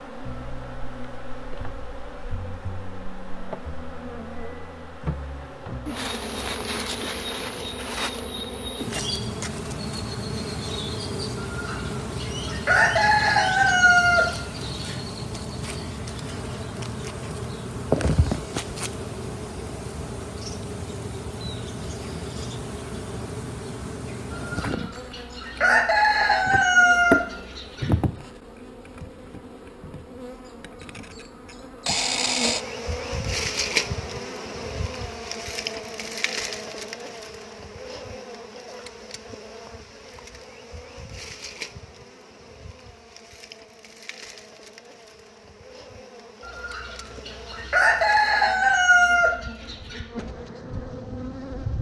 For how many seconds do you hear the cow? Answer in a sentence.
You can't hear the cow here.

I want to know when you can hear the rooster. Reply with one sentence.
You can hear the rooster from 11.3 to 14.9 s, from 24.3 to 27.9 s and from 46.4 to 50.0 s.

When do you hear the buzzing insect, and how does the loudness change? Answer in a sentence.
The buzzing insect can be heard from 0.0 to 51.7 s, getting quieter.